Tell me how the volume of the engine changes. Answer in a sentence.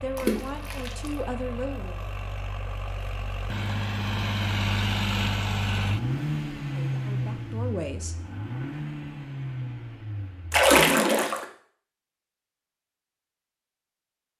The loudness of the engine goes up, then down.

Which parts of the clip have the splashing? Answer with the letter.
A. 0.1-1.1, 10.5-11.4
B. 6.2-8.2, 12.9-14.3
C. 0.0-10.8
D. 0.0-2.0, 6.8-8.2
A.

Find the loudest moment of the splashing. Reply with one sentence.
The volume of the splashing peaks at 11 seconds.